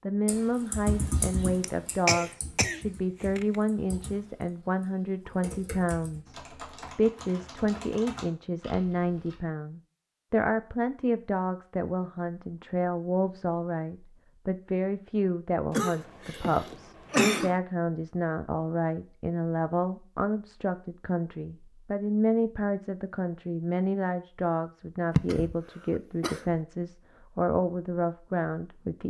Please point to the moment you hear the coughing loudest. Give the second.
17 s.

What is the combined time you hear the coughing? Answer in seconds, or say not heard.
5 s.